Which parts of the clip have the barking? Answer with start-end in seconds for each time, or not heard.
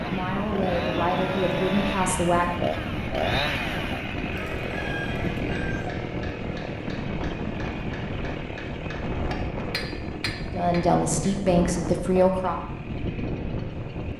not heard.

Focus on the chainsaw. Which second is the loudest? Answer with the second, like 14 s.
3 s.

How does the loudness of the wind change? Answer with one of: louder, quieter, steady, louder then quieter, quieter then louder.
steady.